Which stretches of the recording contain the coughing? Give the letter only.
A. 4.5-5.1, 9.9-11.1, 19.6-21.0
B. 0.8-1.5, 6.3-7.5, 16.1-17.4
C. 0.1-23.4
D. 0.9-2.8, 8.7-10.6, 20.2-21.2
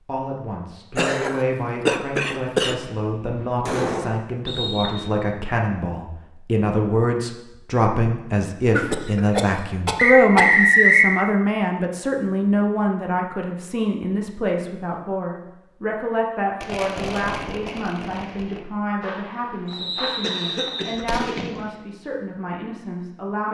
D.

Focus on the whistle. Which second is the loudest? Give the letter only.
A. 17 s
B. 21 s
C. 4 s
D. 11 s
D.